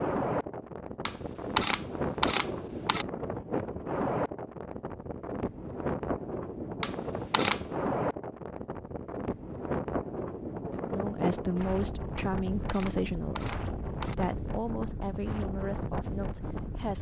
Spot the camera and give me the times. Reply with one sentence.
You can hear the camera from 1.1 to 3.0 s, from 6.8 to 7.7 s and from 12.2 to 14.2 s.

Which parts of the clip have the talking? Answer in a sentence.
The talking can be heard from 10.9 to 16.9 s.